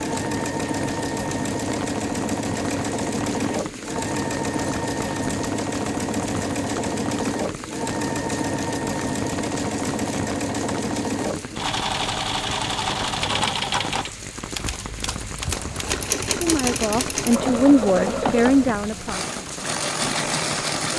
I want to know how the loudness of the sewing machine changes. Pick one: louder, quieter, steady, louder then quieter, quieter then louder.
steady.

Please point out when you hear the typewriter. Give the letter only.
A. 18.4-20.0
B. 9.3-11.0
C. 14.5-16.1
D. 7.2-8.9
C.